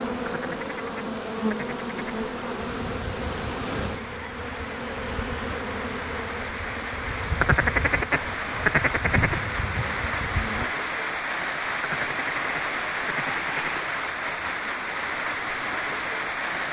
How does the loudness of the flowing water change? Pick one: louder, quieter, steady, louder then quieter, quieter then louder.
louder.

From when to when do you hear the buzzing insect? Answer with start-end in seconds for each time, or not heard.
0.0-10.7.